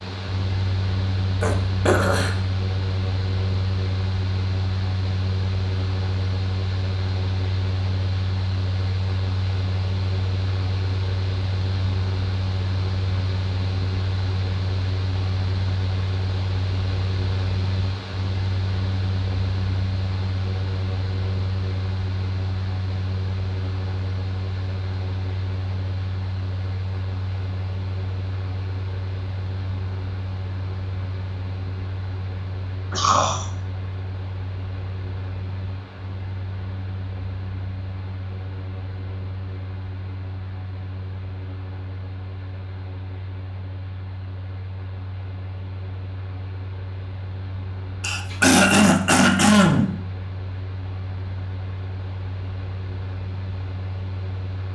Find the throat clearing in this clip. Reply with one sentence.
The throat clearing can be heard from 1.4 to 2.4 s, from 32.9 to 33.5 s and from 48.0 to 50.0 s.